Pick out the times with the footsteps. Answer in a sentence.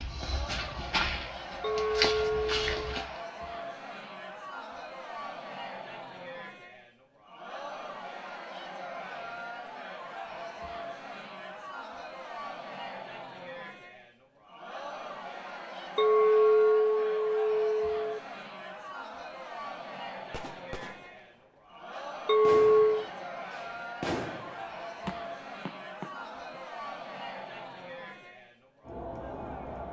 The footsteps can be heard from 0.0 to 3.2 s.